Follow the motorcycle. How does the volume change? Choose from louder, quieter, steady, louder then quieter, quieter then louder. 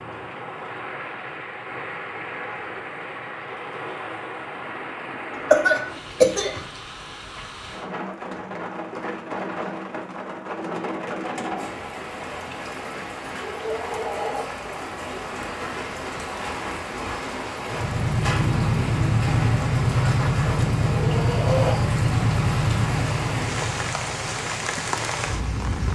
quieter.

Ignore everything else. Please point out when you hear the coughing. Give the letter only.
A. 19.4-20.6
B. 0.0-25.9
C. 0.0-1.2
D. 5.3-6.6
D.